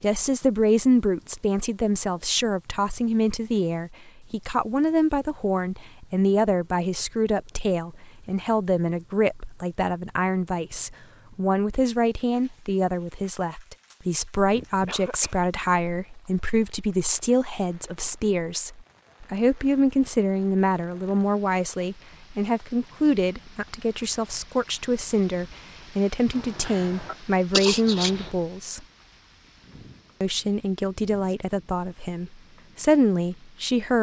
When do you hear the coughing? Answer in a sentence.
The coughing can be heard from 14.5 to 15.4 s and from 26.4 to 28.3 s.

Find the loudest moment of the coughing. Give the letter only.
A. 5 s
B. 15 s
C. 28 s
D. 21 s
C.